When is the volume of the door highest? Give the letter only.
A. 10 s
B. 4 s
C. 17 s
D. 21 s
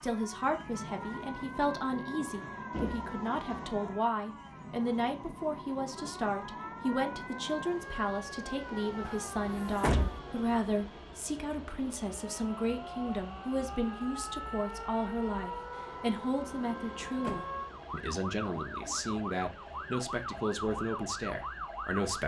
A.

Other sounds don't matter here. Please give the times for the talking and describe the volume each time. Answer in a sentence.
The talking can be heard from 0.0 to 22.2 s, at a steady volume.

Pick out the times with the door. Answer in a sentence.
You can hear the door from 2.7 to 3.6 s, from 9.0 to 10.2 s and from 16.4 to 17.4 s.